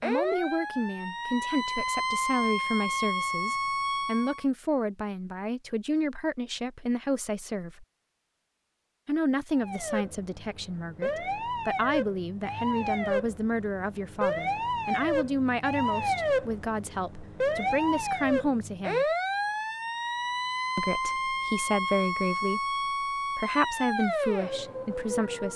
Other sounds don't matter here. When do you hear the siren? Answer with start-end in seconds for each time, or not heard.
0.0-4.5, 9.5-25.5.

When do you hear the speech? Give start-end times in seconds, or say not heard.
0.0-7.8, 9.1-19.1, 20.8-25.5.